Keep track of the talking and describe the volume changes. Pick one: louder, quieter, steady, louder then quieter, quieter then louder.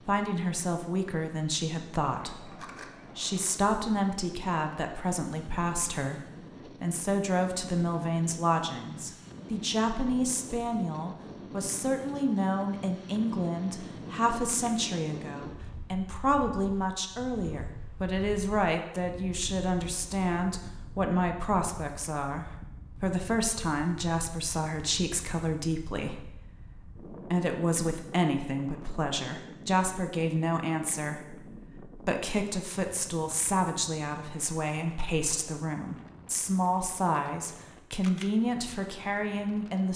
steady.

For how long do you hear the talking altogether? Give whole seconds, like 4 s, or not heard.
40 s.